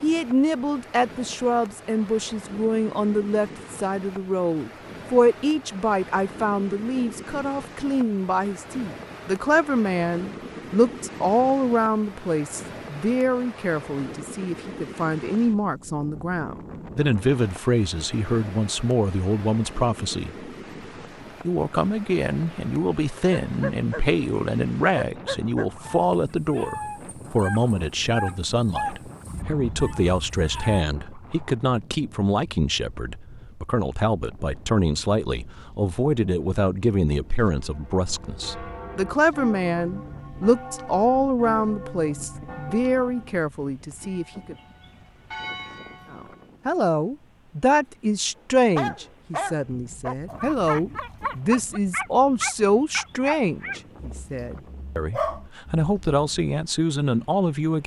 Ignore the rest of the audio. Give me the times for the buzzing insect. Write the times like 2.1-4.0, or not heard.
not heard.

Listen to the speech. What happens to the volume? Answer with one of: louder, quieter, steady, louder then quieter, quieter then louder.
steady.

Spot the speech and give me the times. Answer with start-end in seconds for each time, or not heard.
0.0-20.5, 21.4-44.5, 46.1-57.8.